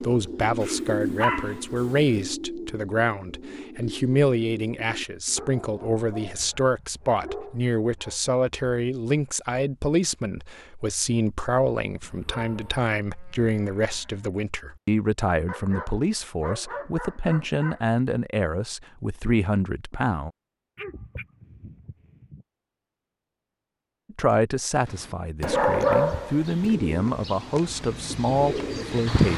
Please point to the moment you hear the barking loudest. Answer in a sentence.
The volume of the barking peaks at 26 seconds.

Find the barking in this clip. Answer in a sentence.
You can hear the barking from 0.6 to 2.2 s, from 5.3 to 8.2 s, from 12.0 to 12.8 s, from 15.4 to 17.9 s, from 20.8 to 22.4 s and from 25.4 to 26.8 s.